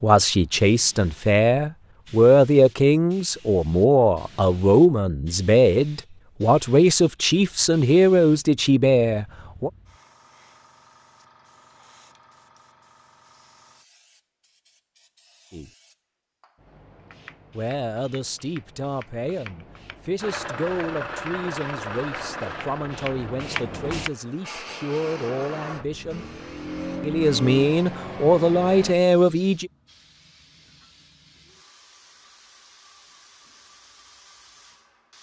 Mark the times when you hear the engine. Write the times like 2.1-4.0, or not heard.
20.2-28.9.